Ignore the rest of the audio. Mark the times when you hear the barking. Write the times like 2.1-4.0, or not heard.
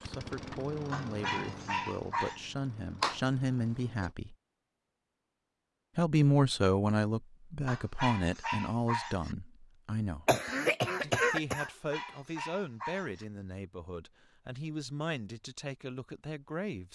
0.9-2.4, 7.7-9.3, 11.6-13.2.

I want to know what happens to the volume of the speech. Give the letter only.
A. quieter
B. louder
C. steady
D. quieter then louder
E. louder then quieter
E.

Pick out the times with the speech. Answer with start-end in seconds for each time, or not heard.
0.0-4.3, 6.0-10.2, 11.0-16.9.